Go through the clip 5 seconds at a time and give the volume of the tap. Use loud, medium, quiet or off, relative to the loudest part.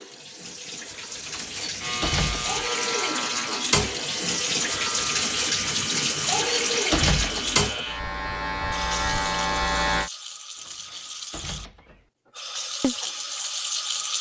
loud, loud, medium.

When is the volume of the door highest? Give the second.
7 s.